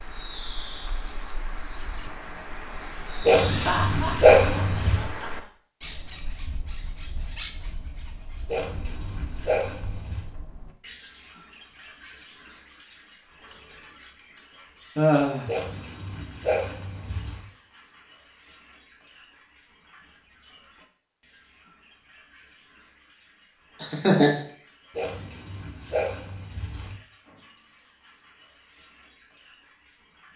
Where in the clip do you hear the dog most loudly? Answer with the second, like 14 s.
4 s.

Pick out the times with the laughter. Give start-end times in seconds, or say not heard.
3.4-5.5, 14.9-15.5, 23.8-24.4.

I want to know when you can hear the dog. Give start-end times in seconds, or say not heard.
3.2-5.0, 8.4-10.3, 15.4-17.4, 24.9-26.9.